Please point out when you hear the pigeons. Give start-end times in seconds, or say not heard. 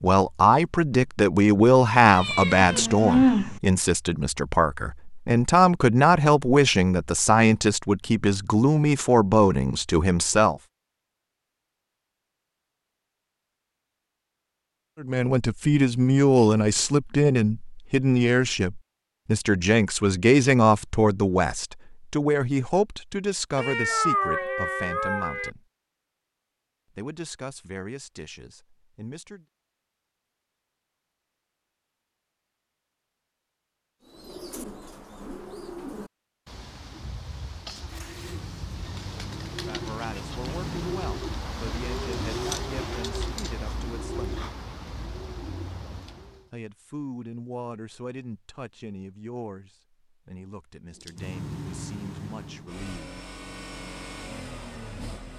34.0-46.5.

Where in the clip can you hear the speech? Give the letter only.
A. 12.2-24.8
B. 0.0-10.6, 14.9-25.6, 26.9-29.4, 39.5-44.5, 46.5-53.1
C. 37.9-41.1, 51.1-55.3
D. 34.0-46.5
B.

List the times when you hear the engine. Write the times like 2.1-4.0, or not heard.
37.9-41.1, 51.1-55.3.